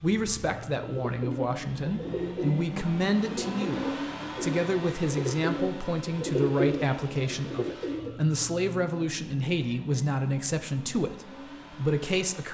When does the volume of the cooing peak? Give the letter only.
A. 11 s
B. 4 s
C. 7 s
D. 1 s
C.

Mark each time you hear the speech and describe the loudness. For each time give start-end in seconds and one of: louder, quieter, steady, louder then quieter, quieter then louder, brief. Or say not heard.
0.0-12.5 steady.